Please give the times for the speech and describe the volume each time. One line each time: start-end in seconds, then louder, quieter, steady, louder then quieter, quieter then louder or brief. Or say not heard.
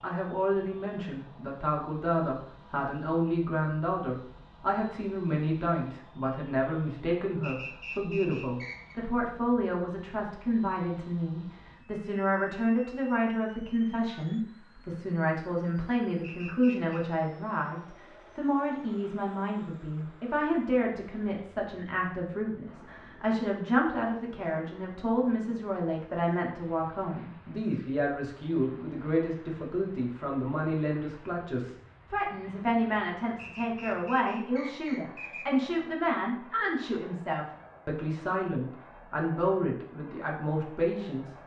0.0-41.4 steady.